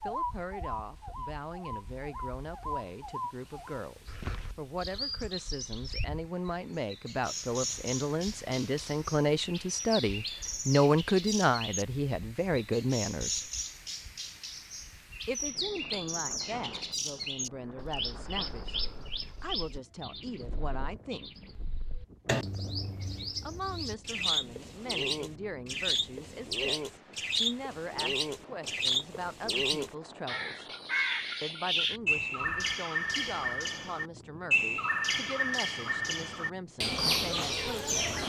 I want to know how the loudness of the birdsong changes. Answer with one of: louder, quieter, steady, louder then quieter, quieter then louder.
louder.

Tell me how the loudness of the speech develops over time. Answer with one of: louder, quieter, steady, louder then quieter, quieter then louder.
louder then quieter.